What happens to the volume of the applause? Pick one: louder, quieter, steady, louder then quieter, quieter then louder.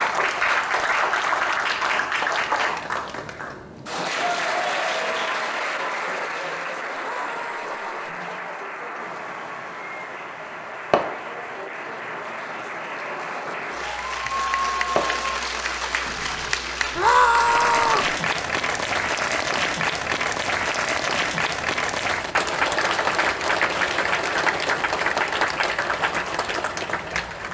quieter then louder.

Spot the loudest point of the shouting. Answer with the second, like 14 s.
17 s.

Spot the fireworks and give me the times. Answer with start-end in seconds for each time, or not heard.
8.9-16.6.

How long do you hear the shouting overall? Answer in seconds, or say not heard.
2 s.